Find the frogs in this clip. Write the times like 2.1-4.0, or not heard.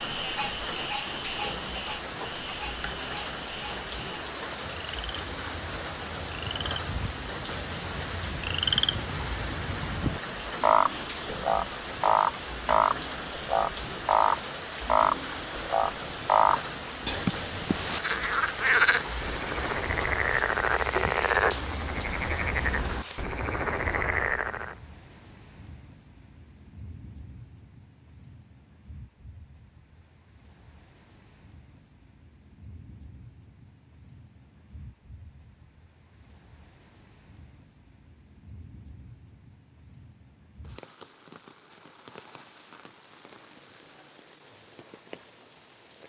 0.0-24.8.